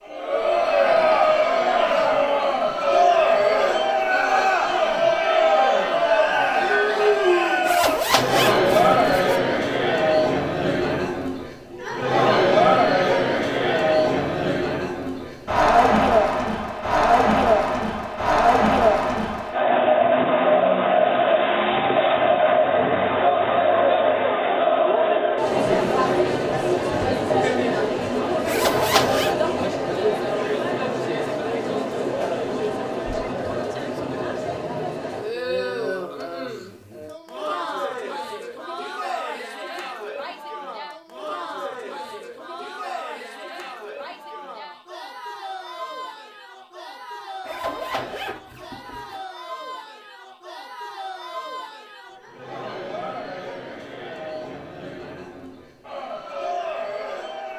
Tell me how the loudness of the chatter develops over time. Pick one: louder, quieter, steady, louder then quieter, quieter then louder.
quieter.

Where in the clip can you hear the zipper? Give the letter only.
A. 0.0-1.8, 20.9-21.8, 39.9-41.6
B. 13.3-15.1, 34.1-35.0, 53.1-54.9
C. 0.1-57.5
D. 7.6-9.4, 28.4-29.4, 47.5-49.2
D.